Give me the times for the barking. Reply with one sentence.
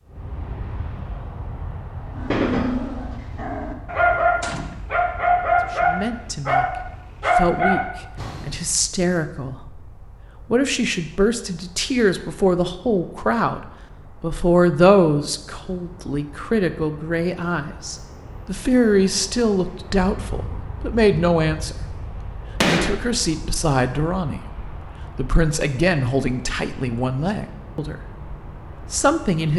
You can hear the barking from 2.1 to 8.6 s.